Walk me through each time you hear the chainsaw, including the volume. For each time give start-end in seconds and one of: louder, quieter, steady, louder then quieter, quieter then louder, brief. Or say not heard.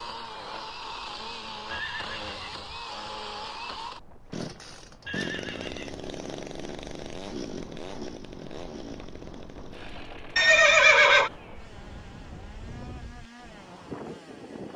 0.0-14.7 quieter.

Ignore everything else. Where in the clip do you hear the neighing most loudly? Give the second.
11 s.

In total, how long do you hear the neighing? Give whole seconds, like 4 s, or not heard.
3 s.